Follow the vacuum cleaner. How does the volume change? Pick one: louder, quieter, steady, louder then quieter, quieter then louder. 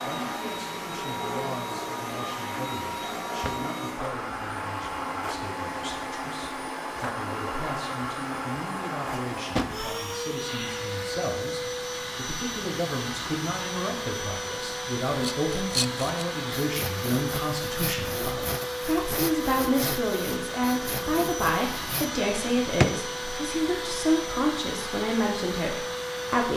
steady.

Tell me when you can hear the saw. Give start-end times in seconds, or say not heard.
15.1-22.1.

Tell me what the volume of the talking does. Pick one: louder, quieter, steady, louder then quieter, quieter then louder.
louder.